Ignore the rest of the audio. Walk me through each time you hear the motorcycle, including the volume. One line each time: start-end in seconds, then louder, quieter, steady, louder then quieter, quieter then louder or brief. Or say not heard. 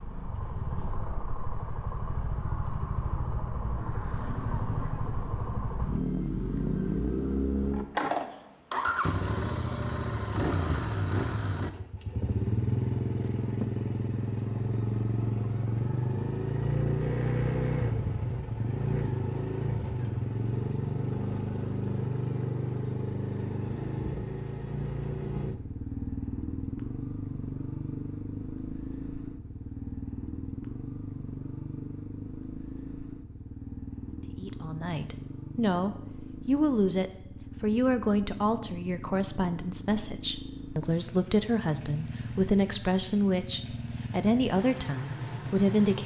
0.0-46.0 quieter.